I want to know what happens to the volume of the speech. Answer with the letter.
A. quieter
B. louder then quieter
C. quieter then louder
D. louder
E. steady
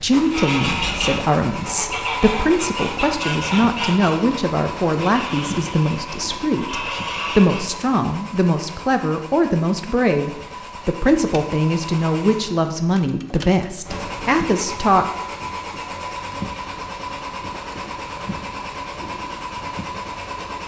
E.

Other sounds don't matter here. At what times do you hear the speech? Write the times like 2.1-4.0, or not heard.
0.0-15.1.